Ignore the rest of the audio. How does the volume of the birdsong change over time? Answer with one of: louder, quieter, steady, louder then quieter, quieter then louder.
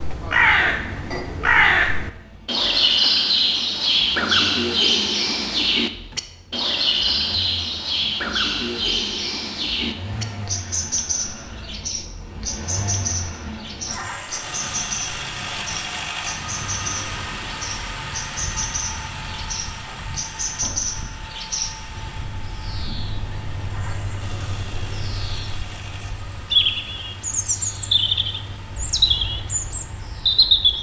quieter then louder.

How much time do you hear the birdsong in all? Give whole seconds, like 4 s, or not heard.
31 s.